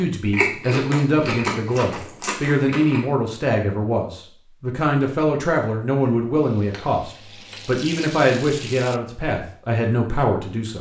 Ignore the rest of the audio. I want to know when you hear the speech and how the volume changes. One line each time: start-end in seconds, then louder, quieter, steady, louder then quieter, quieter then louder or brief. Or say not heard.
0.0-10.7 steady.